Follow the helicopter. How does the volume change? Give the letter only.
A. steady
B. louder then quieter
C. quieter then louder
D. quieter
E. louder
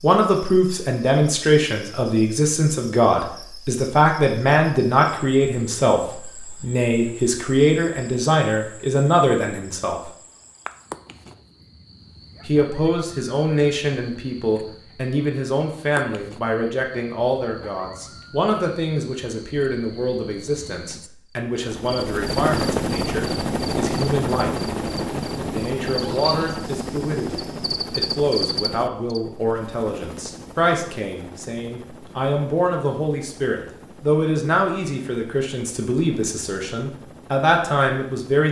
D.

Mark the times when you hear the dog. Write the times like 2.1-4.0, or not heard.
not heard.